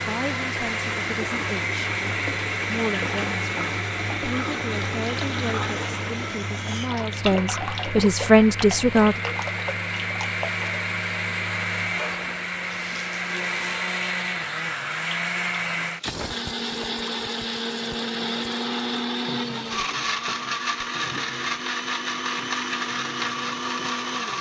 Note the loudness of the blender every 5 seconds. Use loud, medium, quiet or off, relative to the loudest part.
loud, medium, loud, loud, loud.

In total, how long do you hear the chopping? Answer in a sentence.
The chopping can't be heard in this clip.